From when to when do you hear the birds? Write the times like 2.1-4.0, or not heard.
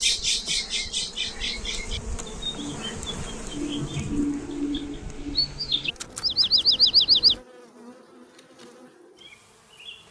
0.0-7.3.